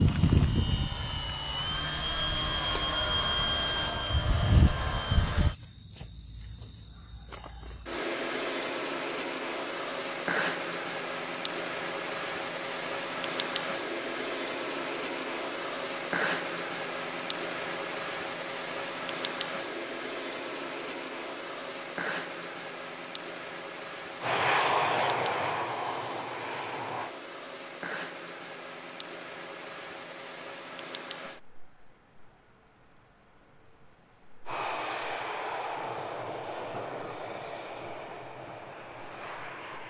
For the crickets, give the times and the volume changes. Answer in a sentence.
The crickets can be heard from 0.0 to 39.8 s, getting quieter.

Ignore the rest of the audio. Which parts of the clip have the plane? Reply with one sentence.
You can hear the plane from 0.0 to 5.5 s, from 24.2 to 27.1 s and from 34.5 to 39.8 s.